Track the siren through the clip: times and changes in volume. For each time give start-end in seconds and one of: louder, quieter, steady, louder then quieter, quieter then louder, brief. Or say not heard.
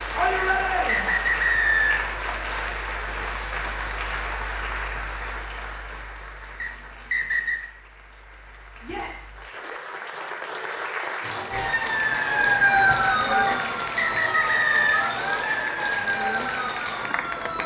11.5-17.6 quieter.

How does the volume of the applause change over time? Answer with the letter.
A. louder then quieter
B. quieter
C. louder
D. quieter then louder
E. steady
D.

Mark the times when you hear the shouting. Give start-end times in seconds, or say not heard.
0.1-1.1, 8.8-9.8, 12.7-13.7.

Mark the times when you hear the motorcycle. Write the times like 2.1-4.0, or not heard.
not heard.